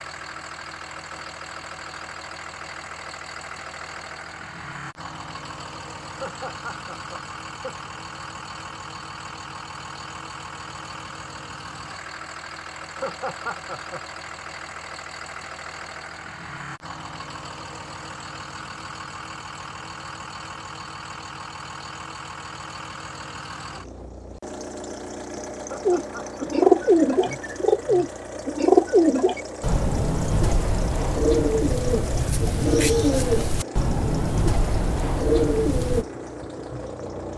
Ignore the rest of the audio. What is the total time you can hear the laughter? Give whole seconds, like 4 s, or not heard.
4 s.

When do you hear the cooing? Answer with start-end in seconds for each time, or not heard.
25.9-36.0.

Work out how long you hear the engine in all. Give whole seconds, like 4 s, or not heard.
37 s.